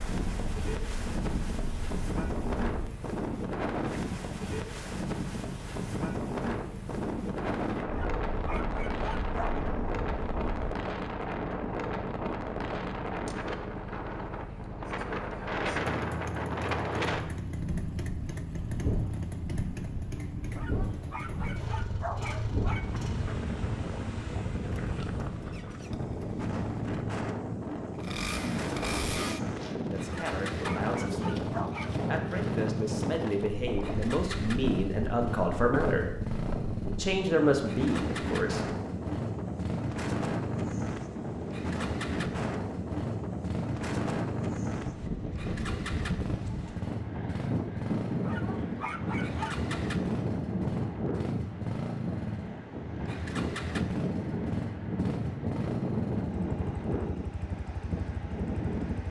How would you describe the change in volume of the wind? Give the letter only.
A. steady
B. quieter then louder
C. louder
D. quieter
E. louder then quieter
A.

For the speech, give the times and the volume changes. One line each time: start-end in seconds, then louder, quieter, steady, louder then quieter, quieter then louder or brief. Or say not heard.
29.9-36.1 louder
37.0-38.6 brief.